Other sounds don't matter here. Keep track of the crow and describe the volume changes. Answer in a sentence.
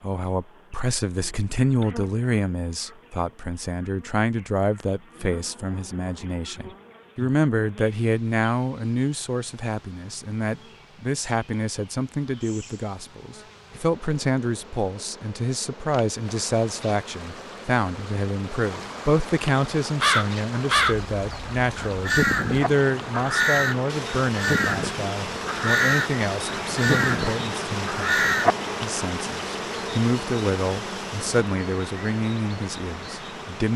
The loudness of the crow stays about the same.